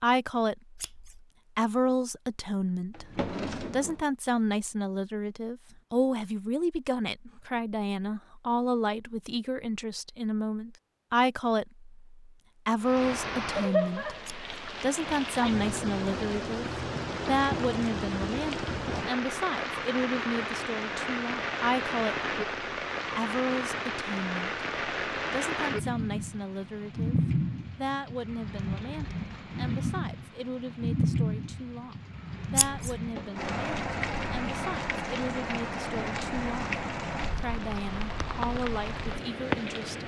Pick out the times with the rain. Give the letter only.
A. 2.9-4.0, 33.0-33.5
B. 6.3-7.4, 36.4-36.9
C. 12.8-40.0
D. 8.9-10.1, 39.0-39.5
C.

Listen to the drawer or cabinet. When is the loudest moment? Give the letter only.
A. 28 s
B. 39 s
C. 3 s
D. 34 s
C.